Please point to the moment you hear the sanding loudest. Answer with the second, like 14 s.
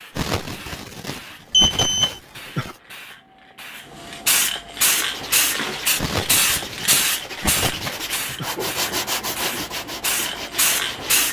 9 s.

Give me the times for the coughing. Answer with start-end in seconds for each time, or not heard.
0.1-2.8, 6.0-8.5.